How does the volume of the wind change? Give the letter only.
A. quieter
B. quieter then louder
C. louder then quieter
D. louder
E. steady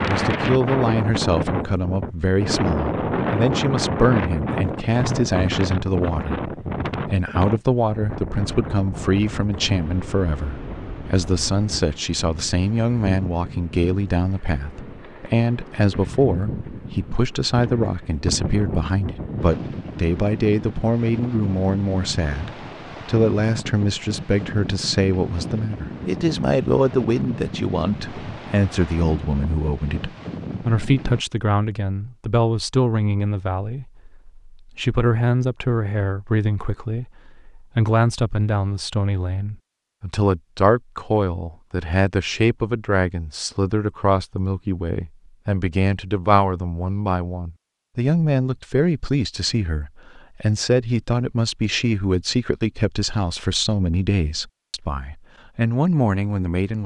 A.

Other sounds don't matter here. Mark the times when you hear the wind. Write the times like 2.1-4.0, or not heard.
0.0-31.2.